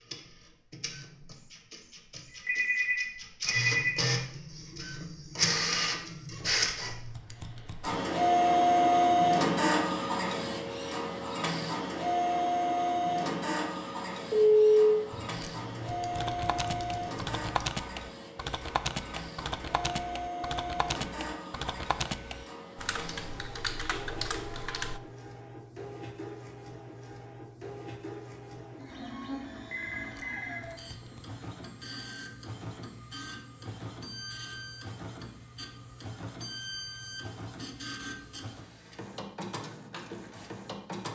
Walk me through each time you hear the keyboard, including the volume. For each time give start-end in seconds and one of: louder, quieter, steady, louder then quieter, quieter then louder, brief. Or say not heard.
16.1-25.0 steady.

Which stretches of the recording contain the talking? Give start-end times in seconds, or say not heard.
not heard.